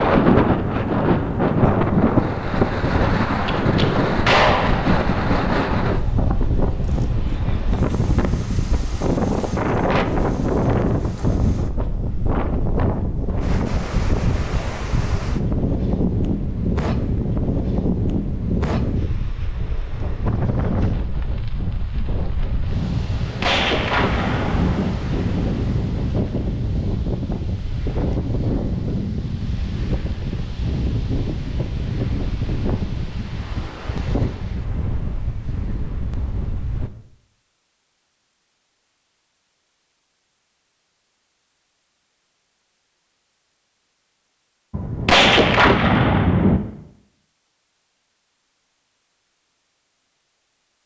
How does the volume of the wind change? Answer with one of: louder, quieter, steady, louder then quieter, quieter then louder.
quieter.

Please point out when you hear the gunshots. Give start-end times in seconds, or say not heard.
3.5-5.0, 23.1-24.9, 44.7-46.6.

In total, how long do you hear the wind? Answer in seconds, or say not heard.
37 s.